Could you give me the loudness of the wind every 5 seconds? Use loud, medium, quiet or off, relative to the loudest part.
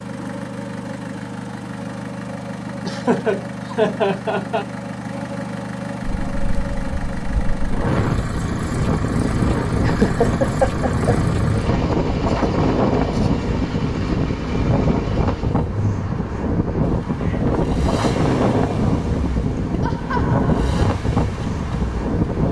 off, loud, loud, loud, loud.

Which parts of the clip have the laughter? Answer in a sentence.
You can hear the laughter from 2.8 to 4.7 s, from 9.8 to 11.2 s and from 19.8 to 20.9 s.